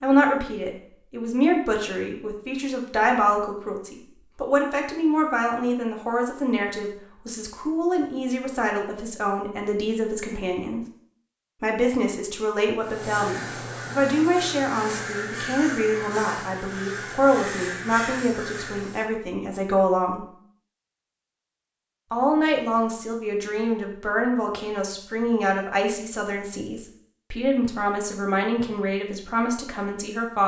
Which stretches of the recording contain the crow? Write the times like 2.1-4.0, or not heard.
12.8-19.1.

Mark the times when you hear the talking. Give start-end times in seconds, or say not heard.
0.0-10.8, 11.6-20.2, 22.1-30.4.